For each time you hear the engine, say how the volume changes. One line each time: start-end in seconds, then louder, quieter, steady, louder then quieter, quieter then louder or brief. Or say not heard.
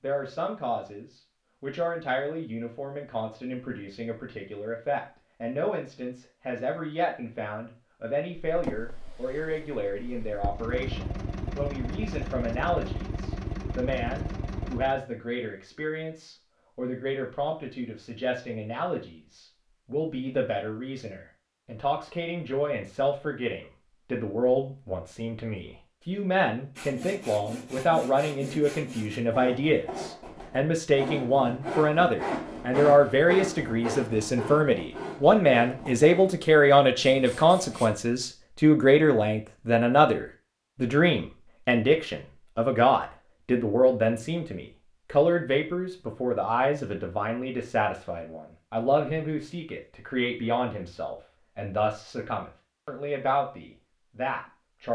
10.4-15.1 steady.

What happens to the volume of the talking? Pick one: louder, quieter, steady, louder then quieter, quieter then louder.
louder then quieter.